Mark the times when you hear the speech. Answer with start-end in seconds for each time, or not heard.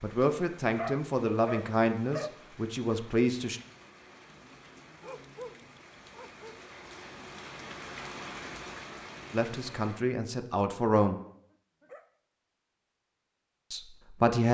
0.0-3.6, 9.3-11.2, 13.7-14.5.